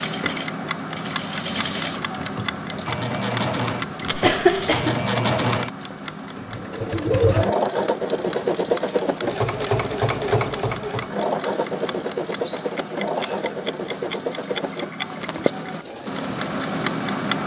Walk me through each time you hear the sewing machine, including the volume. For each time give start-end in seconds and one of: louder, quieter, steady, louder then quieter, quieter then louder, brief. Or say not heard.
0.0-17.4 louder then quieter.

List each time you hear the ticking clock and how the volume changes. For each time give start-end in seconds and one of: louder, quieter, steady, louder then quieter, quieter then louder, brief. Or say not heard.
0.0-17.4 quieter then louder.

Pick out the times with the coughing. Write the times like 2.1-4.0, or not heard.
4.2-5.0.